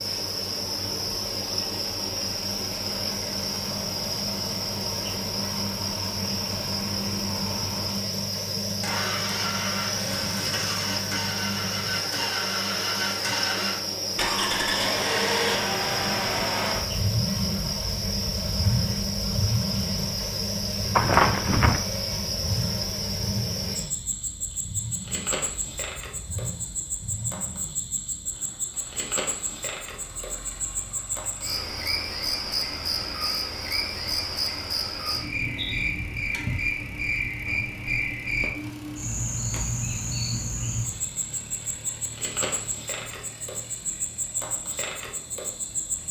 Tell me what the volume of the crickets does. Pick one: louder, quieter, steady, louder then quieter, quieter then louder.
steady.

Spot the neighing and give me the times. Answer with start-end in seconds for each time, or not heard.
20.9-21.8.